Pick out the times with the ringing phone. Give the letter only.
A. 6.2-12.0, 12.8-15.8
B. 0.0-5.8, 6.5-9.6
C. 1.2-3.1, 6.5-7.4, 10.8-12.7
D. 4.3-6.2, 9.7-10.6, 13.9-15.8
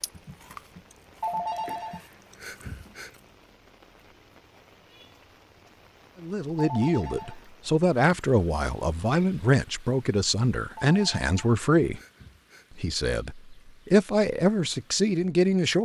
C.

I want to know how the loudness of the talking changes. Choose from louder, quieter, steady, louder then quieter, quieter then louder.
steady.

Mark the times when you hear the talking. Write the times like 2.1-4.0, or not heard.
6.2-12.0, 12.8-15.8.